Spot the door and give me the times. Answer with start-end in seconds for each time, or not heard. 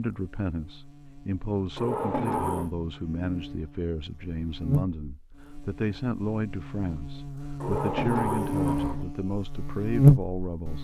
1.8-2.7, 7.6-9.1.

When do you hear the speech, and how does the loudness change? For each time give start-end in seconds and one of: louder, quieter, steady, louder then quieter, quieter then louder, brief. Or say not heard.
0.0-10.7 steady.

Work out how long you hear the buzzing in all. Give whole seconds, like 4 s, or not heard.
11 s.